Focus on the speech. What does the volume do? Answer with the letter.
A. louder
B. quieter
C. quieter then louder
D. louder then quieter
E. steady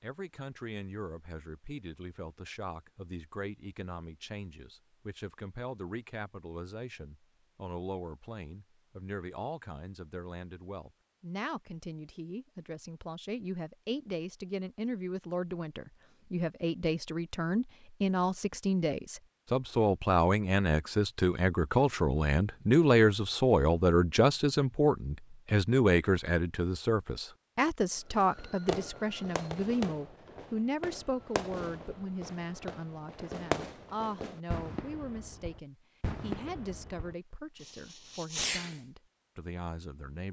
D.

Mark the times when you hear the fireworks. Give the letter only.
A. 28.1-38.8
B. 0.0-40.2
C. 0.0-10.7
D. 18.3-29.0
A.